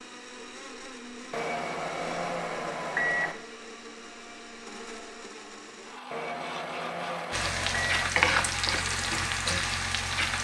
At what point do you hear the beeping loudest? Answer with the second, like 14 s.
3 s.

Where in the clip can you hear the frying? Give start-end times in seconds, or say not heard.
7.3-10.4.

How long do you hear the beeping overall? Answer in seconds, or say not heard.
4 s.